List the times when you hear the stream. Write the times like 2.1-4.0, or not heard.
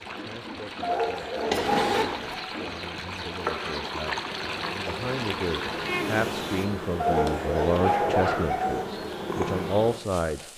0.0-6.7.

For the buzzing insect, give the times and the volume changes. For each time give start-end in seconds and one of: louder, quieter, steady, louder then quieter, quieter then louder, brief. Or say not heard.
0.0-10.5 louder.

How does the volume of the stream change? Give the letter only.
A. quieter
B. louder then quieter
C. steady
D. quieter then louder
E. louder
E.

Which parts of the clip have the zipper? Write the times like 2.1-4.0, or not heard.
1.5-2.4, 7.6-8.4.